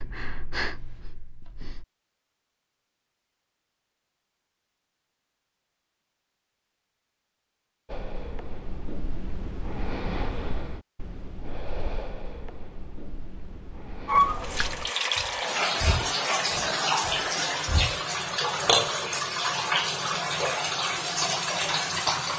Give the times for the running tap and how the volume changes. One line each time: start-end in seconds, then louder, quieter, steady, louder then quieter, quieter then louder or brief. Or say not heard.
14.1-22.3 steady.